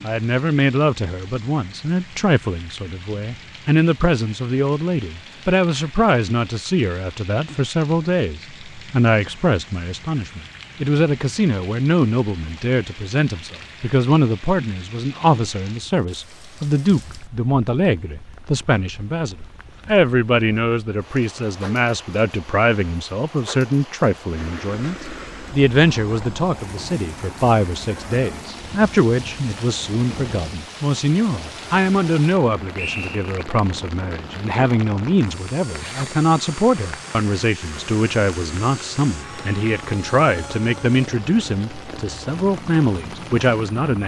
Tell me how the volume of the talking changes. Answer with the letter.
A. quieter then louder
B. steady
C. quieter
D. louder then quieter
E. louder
B.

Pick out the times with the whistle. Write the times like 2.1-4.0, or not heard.
32.8-33.5.